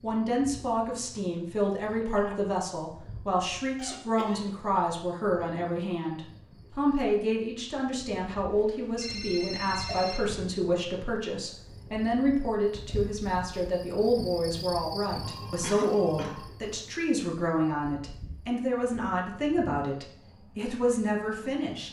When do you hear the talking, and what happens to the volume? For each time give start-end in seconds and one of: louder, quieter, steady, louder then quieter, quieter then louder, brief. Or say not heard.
0.0-21.8 steady.